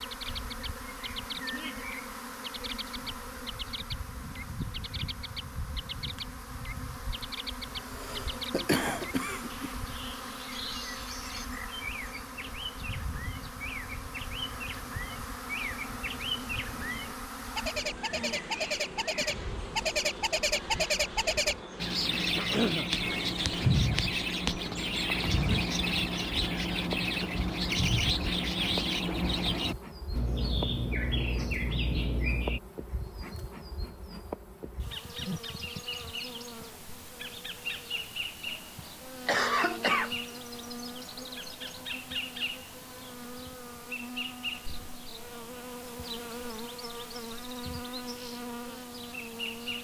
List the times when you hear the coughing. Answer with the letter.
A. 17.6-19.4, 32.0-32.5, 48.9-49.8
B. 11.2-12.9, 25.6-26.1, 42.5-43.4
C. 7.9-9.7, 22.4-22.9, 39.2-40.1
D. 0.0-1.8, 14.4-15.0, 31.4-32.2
C.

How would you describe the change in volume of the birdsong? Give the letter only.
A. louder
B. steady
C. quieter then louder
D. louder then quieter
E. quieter
A.